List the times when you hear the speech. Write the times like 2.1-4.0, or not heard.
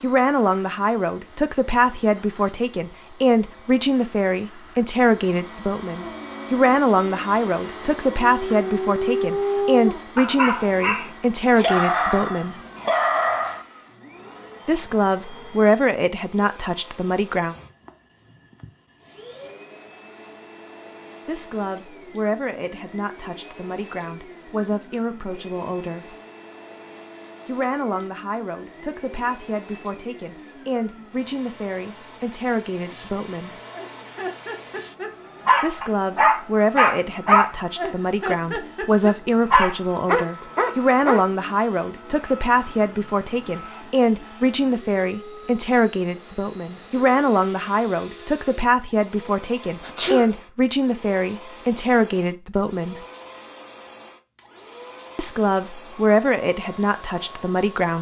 0.0-12.6, 14.7-17.6, 21.2-26.1, 27.4-33.5, 35.6-53.0, 55.1-57.9.